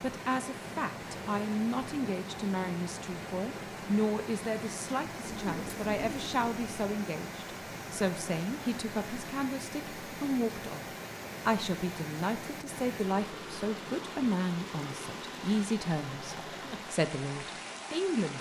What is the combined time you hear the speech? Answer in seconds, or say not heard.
18 s.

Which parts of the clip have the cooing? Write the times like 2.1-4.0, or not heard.
5.2-6.8.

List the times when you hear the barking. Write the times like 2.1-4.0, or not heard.
not heard.